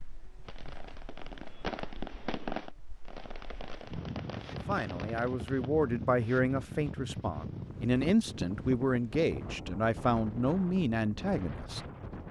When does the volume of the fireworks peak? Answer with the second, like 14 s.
2 s.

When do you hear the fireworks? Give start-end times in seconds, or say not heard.
0.5-5.7.